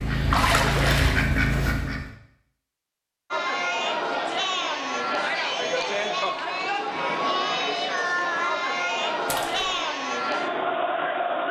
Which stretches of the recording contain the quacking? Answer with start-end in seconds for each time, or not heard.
0.0-2.1.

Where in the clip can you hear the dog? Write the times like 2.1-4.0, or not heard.
not heard.